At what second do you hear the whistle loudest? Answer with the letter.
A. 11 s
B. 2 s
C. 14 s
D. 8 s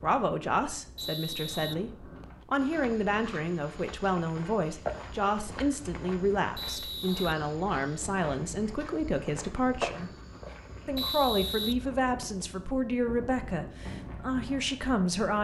A.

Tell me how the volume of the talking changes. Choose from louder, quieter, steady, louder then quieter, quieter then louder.
steady.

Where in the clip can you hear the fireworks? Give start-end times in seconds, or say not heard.
not heard.